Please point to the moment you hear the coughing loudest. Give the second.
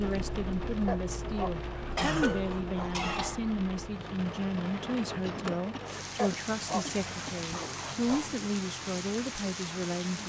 2 s.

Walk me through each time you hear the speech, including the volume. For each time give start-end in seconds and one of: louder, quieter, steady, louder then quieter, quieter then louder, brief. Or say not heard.
0.0-10.2 steady.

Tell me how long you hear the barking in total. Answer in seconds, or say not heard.
5 s.